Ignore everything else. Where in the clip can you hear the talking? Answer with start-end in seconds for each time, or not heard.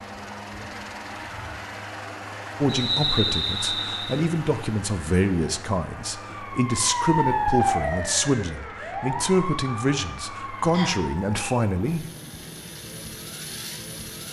2.6-12.1.